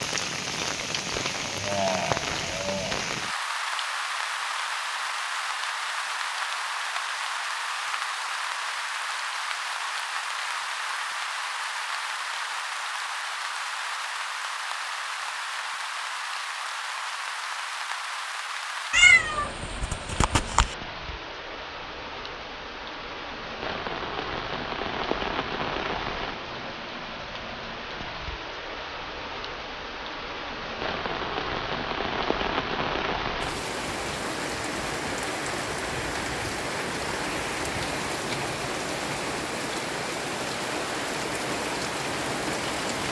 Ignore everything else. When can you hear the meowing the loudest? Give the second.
19 s.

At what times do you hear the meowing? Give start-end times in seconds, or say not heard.
18.9-20.8.